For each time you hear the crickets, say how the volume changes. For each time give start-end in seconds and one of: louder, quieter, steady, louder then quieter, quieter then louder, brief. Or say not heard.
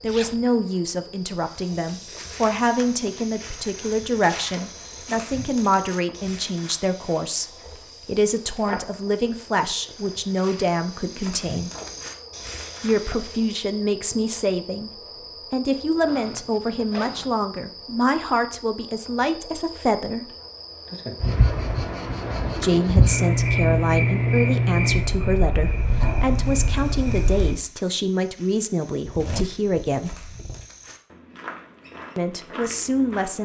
0.0-27.6 louder.